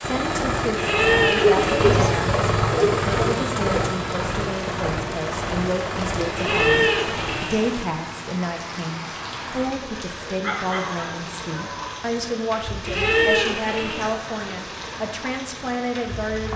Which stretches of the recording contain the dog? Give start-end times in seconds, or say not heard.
1.4-3.9, 10.4-11.9.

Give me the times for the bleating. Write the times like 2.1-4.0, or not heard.
0.8-2.0, 6.3-7.7, 12.8-14.2.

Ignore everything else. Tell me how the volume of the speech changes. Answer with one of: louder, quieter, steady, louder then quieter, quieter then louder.
steady.